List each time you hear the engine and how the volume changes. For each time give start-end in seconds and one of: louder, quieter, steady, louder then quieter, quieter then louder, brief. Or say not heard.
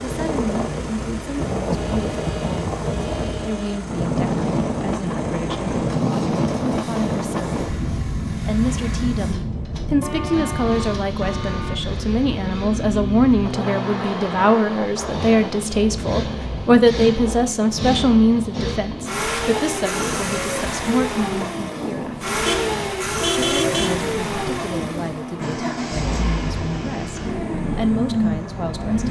0.0-29.0 louder.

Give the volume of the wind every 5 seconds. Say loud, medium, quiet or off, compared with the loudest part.
loud, loud, medium, medium, medium, medium.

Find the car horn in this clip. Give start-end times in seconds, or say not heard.
1.8-3.8, 10.0-11.8, 22.4-24.1.